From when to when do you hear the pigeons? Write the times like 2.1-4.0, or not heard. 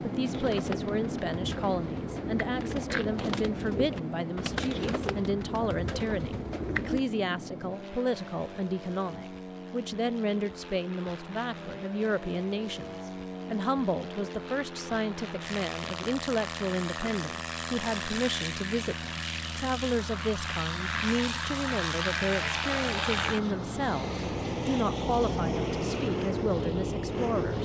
0.2-7.0.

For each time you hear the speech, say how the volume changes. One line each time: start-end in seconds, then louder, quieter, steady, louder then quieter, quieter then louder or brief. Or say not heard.
0.0-27.6 steady.